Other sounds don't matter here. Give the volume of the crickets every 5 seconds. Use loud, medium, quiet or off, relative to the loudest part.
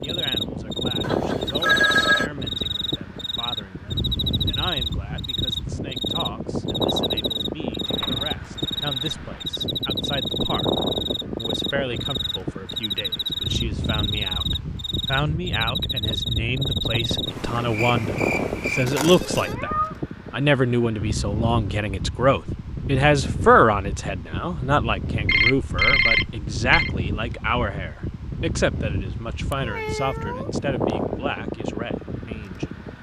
loud, loud, loud, loud, off, off, off.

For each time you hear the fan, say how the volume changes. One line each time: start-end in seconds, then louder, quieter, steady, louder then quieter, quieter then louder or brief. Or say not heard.
0.0-32.9 steady.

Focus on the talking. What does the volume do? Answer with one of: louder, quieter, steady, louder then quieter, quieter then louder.
louder then quieter.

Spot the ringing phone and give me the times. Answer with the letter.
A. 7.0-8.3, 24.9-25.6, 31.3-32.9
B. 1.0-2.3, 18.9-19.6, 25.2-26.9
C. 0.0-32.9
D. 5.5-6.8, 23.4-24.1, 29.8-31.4
B.